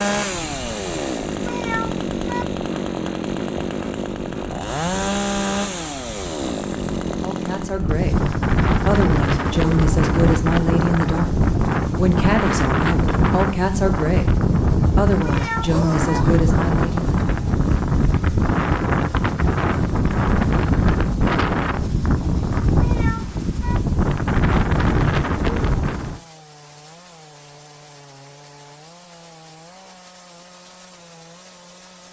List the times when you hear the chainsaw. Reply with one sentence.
The chainsaw can be heard from 0.0 to 32.0 s.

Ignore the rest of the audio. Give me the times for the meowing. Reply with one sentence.
The meowing can be heard from 1.4 to 2.5 s, from 15.2 to 16.2 s and from 22.8 to 23.8 s.